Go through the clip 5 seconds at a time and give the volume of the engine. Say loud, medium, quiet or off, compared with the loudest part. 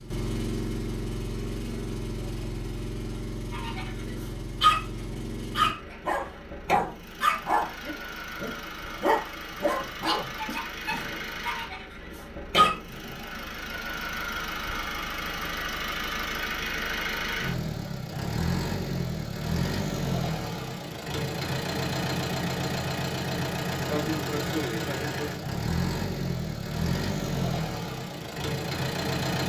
medium, medium, medium, loud, loud, loud.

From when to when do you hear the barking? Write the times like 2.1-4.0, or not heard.
3.5-13.2.